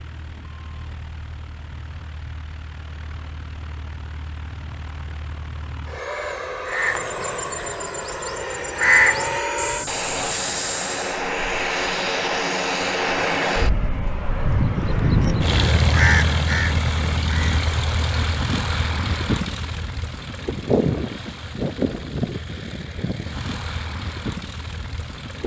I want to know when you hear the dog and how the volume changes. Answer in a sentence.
You can't hear the dog here.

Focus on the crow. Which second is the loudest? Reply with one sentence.
The loudest moment of the crow is at 9 seconds.